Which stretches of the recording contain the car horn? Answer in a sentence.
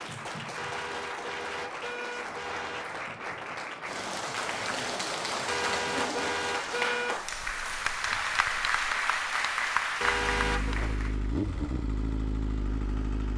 You can hear the car horn from 0.6 to 2.9 s, from 5.5 to 7.2 s and from 10.0 to 10.8 s.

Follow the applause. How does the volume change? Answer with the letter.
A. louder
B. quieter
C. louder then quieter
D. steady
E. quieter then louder
A.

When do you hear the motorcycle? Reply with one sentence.
The motorcycle can be heard from 10.1 to 13.3 s.